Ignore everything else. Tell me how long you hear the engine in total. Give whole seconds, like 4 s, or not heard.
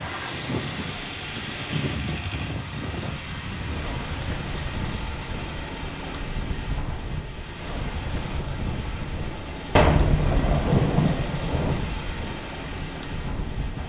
14 s.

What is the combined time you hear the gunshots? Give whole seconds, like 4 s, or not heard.
2 s.